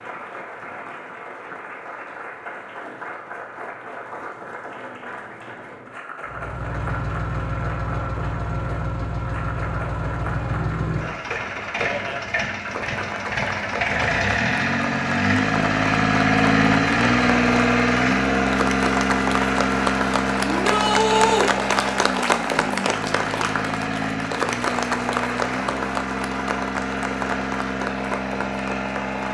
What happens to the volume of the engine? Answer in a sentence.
The volume of the engine goes up, then down.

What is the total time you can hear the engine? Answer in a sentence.
You can hear the engine for 23 seconds altogether.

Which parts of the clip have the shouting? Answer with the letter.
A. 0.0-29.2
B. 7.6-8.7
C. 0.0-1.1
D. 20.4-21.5
D.